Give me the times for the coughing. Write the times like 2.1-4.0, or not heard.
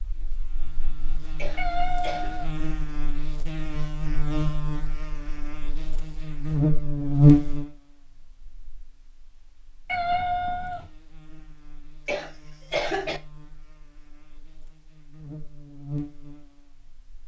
1.4-2.4, 12.1-13.2.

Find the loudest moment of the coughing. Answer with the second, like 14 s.
13 s.